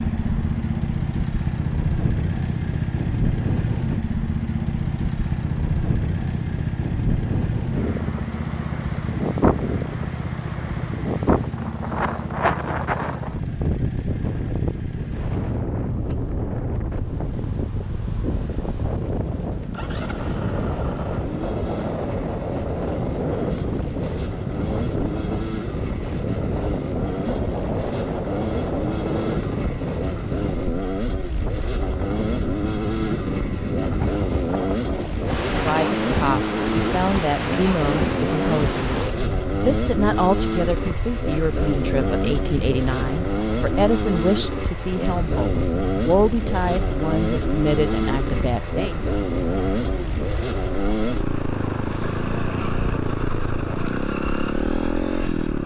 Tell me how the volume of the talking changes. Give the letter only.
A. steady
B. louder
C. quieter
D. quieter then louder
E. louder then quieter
A.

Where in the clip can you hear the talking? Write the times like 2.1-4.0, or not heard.
35.5-49.0.